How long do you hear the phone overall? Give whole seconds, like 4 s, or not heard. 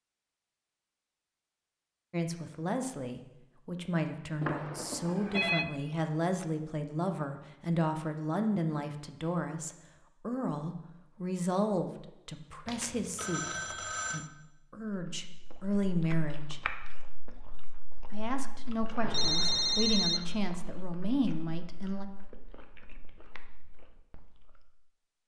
4 s.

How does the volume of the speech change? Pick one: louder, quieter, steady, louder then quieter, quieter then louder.
steady.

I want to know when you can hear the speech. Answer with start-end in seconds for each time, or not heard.
2.1-16.6, 18.1-22.1.